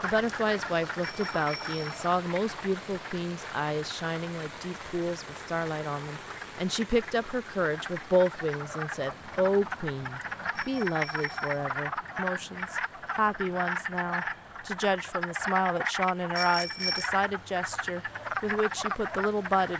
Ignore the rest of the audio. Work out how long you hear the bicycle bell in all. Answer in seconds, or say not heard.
3 s.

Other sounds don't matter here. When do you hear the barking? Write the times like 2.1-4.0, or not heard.
not heard.